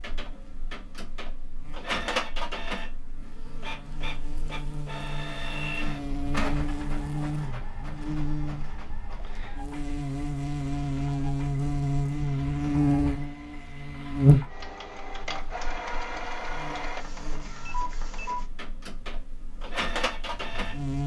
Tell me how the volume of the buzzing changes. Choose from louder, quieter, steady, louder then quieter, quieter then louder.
louder then quieter.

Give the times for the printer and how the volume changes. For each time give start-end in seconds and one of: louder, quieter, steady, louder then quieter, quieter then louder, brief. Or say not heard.
0.0-21.0 quieter then louder.